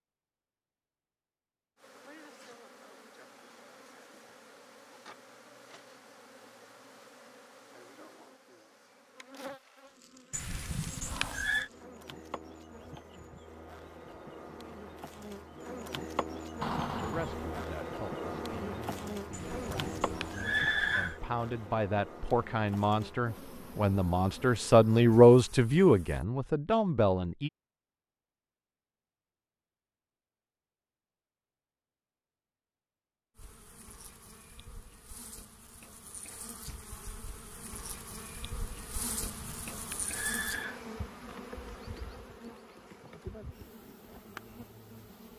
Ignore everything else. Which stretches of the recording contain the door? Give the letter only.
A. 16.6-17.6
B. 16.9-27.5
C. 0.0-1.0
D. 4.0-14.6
A.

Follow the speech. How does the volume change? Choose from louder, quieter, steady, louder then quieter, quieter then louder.
louder.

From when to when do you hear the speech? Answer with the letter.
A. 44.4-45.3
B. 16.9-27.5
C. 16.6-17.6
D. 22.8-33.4
B.